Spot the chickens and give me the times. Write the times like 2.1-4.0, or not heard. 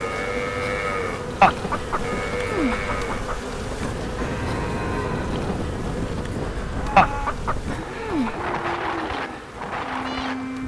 1.4-3.4, 7.0-8.3.